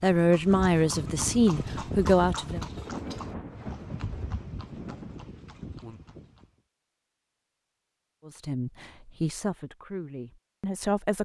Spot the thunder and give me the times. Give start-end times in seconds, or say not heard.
2.9-6.0.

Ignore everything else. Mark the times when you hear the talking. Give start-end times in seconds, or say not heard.
0.0-2.6, 8.2-11.2.